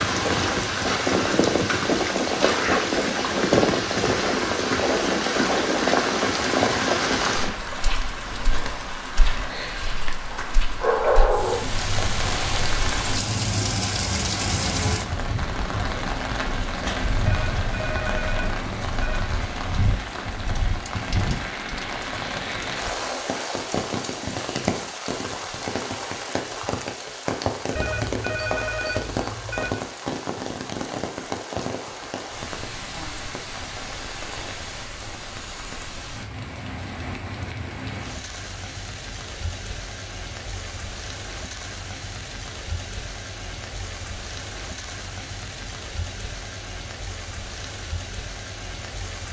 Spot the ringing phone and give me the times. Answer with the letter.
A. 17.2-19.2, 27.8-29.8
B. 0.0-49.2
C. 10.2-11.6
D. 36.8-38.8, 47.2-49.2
A.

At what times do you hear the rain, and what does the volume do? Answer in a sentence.
You can hear the rain from 0.0 to 49.2 s, getting quieter.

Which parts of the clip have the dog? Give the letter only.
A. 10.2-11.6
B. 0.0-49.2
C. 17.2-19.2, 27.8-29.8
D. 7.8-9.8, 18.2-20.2
A.